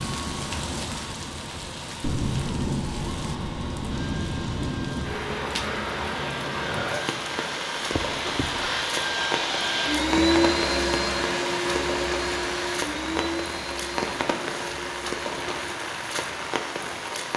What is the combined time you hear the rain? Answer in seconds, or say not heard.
17 s.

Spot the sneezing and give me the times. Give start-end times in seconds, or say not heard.
7.9-8.9.